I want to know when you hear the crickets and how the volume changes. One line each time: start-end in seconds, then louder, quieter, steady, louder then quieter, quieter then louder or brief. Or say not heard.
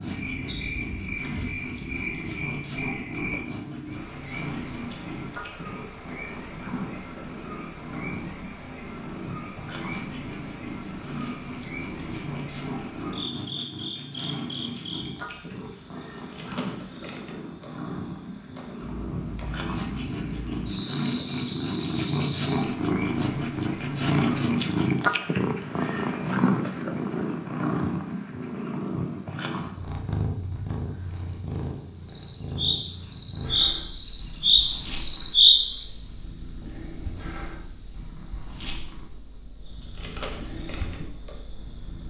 0.0-42.0 louder.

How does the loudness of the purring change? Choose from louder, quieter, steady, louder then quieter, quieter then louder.
louder then quieter.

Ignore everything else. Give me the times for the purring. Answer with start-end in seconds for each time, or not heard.
0.0-42.0.